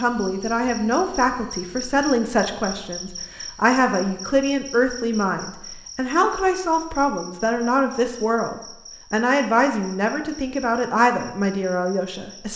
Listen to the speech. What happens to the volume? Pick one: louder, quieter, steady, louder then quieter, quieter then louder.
steady.